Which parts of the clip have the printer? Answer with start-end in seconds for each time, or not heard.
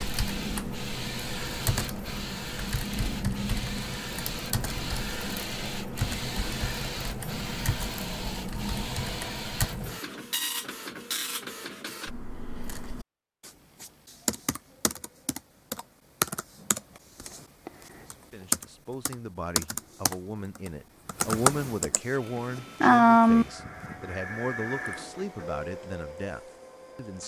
0.0-12.1, 22.1-27.2.